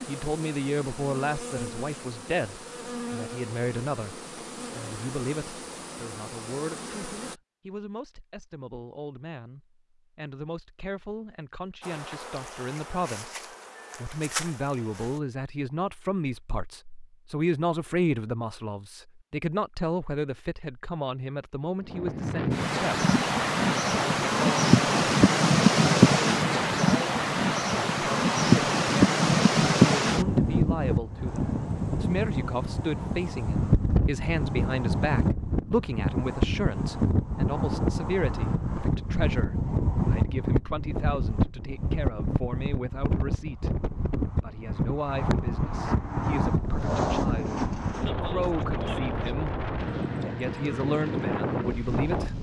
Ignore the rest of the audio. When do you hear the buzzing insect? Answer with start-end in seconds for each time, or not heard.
0.0-7.4, 11.8-15.2.